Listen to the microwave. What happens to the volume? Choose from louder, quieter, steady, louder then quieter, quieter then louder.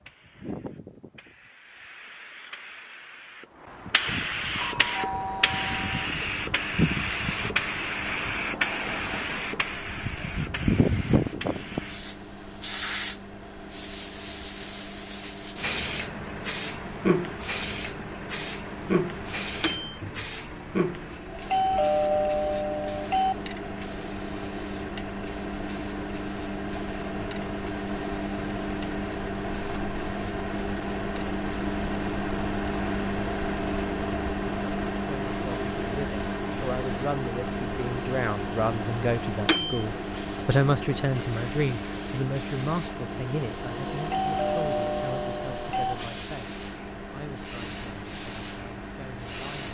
louder then quieter.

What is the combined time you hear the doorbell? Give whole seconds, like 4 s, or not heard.
5 s.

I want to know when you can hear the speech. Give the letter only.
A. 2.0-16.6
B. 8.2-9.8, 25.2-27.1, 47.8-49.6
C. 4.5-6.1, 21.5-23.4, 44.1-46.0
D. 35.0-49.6
D.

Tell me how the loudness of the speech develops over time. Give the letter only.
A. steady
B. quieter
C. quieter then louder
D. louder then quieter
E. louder
D.